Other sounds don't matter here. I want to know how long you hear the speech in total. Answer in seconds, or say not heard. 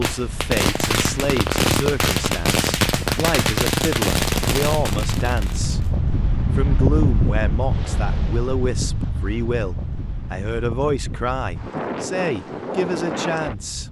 13 s.